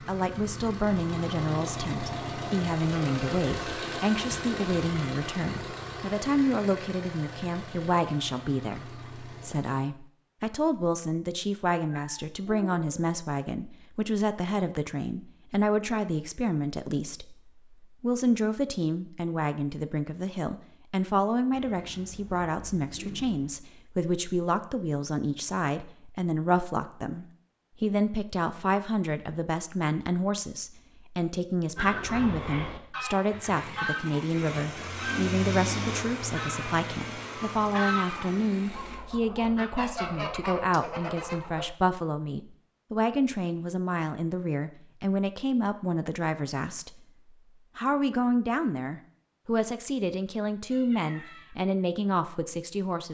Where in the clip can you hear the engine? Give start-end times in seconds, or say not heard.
0.0-9.8, 33.2-39.0.